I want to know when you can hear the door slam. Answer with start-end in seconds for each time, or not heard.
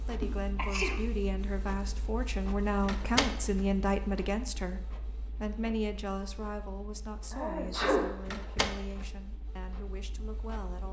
2.9-3.6, 8.2-9.1.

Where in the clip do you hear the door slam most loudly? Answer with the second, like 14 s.
3 s.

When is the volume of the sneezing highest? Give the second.
8 s.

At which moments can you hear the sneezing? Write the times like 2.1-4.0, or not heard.
0.2-1.0, 7.3-8.1.